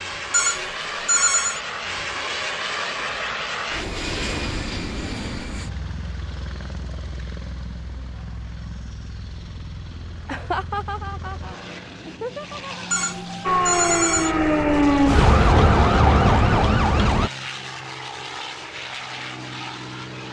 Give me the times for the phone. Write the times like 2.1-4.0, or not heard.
0.3-1.6, 12.9-14.3.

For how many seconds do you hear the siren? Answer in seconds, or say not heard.
4 s.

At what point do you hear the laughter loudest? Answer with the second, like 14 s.
11 s.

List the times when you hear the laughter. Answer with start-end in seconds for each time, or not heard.
10.2-12.8.